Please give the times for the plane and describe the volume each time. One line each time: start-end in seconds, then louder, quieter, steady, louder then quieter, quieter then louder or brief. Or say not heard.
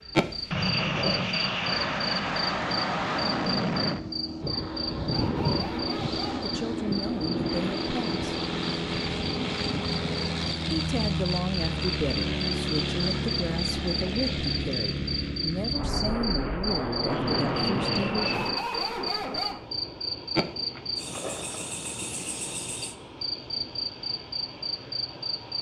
0.0-25.5 quieter.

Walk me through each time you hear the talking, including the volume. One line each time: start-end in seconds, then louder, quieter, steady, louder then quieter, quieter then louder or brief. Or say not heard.
6.4-8.4 brief
10.7-18.2 steady.